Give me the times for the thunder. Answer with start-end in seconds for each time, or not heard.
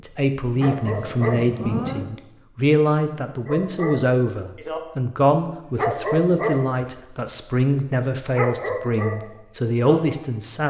0.7-2.0.